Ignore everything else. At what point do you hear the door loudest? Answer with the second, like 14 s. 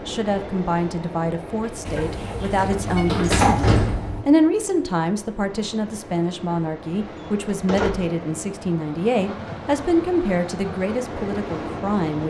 4 s.